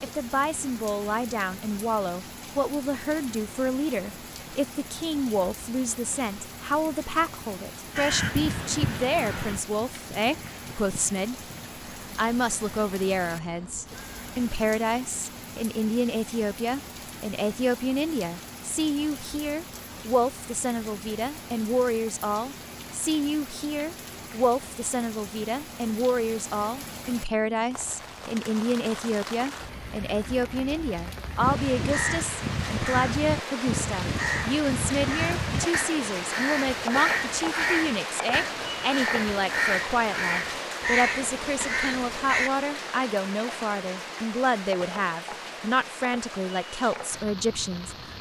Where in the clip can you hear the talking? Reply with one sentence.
The talking can be heard from 0.0 to 11.3 s and from 12.2 to 48.1 s.